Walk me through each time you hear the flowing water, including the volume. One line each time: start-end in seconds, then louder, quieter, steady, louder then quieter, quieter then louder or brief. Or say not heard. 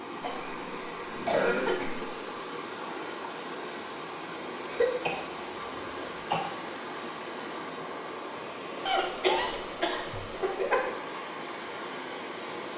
0.0-12.7 steady.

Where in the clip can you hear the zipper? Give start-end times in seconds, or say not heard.
0.9-2.2.